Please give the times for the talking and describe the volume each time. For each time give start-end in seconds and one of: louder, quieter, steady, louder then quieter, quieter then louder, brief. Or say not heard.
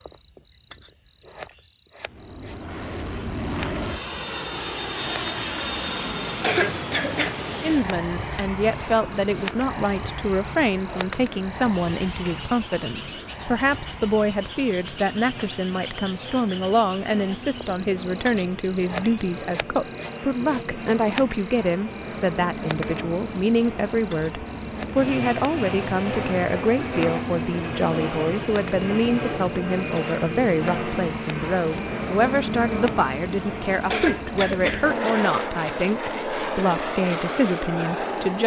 7.6-38.4 steady.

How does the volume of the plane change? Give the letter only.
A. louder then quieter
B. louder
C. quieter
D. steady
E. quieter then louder
E.